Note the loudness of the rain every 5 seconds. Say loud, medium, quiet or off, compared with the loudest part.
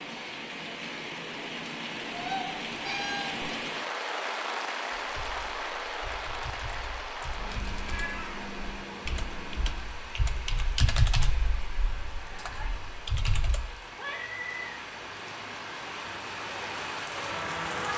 loud, loud, medium, loud.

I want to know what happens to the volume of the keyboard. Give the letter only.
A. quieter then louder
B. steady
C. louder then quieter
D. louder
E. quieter
C.